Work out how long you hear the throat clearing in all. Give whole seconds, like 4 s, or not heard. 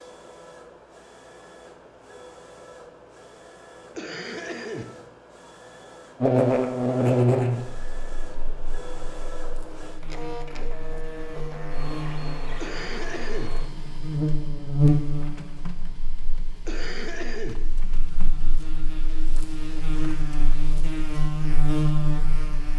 3 s.